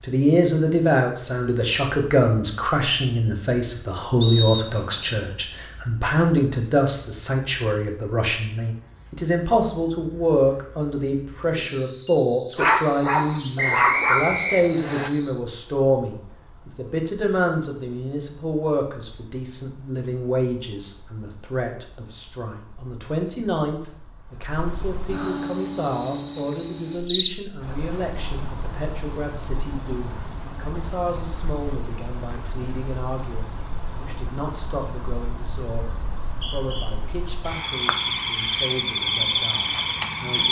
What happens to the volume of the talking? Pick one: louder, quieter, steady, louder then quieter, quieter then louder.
quieter.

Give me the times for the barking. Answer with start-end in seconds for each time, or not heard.
12.6-14.2.